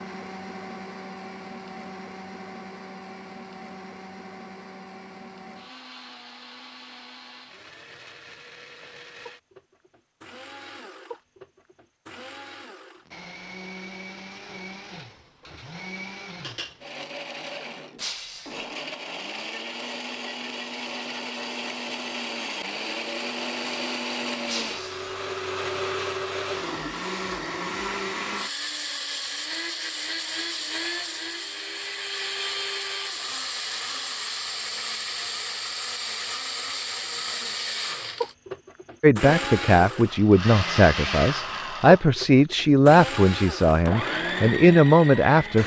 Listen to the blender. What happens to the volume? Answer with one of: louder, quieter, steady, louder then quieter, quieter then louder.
louder.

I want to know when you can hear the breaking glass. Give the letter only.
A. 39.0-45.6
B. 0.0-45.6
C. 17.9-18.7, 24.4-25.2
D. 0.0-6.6
C.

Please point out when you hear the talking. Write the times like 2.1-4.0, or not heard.
39.0-45.6.